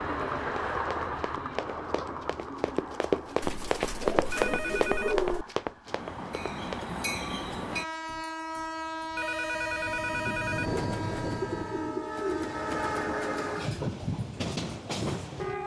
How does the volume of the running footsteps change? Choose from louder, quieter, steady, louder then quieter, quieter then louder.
louder then quieter.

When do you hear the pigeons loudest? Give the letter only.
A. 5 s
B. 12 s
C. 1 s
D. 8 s
A.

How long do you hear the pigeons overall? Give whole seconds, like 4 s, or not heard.
3 s.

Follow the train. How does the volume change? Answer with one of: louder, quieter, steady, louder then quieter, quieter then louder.
quieter then louder.